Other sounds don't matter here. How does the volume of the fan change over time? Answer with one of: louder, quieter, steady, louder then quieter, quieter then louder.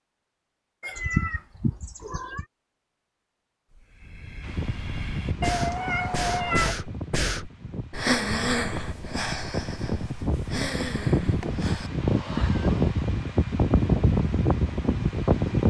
louder.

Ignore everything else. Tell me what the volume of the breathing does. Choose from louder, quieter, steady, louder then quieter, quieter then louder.
louder then quieter.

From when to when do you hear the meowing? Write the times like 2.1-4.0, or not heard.
0.8-2.5, 5.4-6.8, 12.2-12.7.